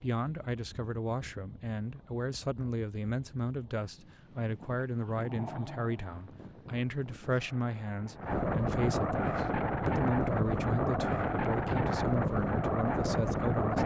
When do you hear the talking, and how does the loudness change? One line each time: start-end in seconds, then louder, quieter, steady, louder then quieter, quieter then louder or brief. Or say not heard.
0.0-13.8 steady.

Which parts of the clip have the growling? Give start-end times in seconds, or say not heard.
4.8-6.5.